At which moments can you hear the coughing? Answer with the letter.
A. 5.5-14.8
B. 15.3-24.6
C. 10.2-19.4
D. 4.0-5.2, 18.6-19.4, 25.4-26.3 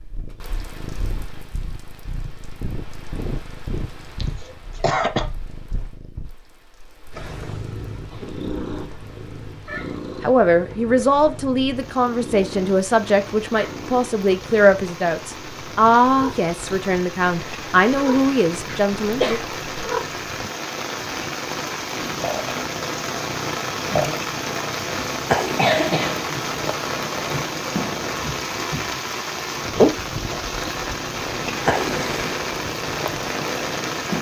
D.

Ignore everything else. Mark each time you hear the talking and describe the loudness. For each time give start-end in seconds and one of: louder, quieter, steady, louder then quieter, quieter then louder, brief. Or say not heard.
10.2-19.4 steady.